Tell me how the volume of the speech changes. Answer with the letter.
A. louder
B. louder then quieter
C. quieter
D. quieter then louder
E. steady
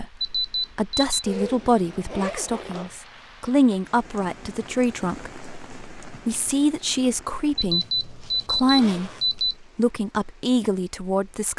E.